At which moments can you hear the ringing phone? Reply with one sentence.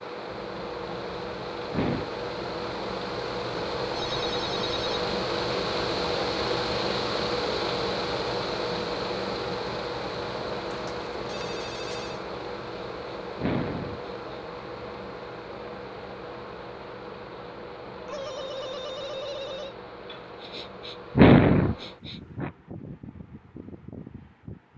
The ringing phone can be heard from 4.0 to 5.0 s, from 10.7 to 12.2 s and from 18.1 to 19.8 s.